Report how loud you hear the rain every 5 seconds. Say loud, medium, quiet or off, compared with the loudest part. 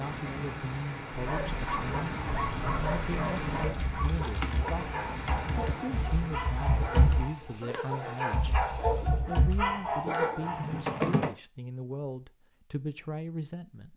loud, medium, off.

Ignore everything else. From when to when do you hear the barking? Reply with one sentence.
You can hear the barking from 1.1 to 10.8 s.